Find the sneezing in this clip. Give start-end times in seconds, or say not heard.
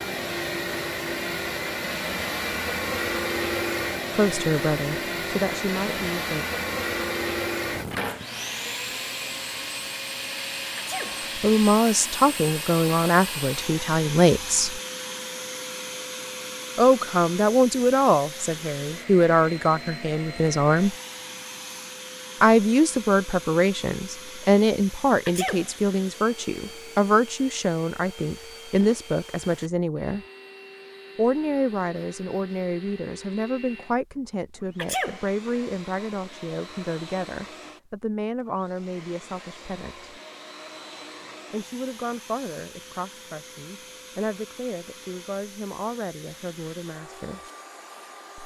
10.8-11.2, 25.2-25.8, 34.8-35.3.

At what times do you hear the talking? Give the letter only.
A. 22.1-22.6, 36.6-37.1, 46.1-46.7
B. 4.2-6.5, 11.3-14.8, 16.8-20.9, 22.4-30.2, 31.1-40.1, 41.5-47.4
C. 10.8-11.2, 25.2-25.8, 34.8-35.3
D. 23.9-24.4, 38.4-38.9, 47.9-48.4
B.